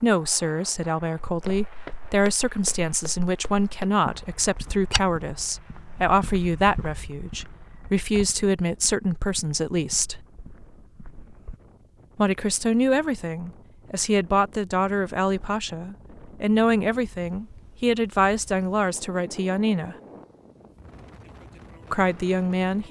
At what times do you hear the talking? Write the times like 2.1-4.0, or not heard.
0.0-10.2, 12.2-19.9, 21.9-22.8.